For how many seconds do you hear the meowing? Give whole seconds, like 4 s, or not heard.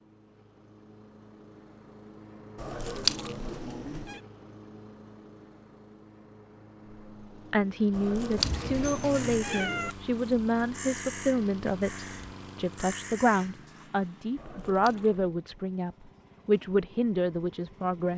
5 s.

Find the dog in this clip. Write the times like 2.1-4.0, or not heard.
not heard.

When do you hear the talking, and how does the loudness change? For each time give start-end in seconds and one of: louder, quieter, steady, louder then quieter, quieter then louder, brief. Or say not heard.
7.5-18.1 steady.